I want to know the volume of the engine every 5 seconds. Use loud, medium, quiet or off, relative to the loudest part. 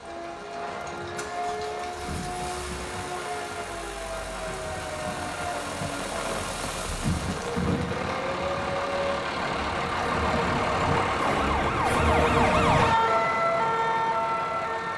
quiet, loud, loud.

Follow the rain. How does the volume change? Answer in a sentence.
The loudness of the rain goes up, then down.